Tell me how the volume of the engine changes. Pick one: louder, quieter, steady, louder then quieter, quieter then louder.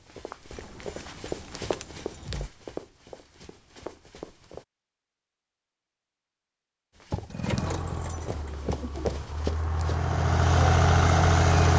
quieter then louder.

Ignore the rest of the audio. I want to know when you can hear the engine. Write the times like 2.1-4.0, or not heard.
7.3-11.7.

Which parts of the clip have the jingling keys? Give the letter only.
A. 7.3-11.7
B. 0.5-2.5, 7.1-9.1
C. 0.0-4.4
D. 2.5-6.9
B.